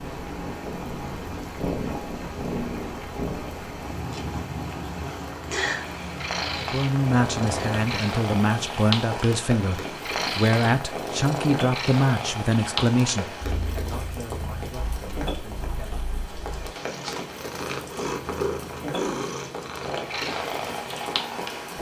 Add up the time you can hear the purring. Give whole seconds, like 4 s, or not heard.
22 s.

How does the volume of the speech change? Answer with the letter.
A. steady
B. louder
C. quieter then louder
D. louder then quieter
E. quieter
E.